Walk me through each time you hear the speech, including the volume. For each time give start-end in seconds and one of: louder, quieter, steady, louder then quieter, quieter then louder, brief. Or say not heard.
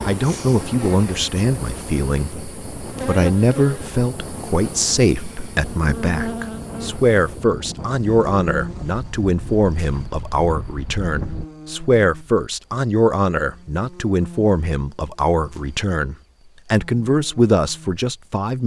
0.0-18.6 steady.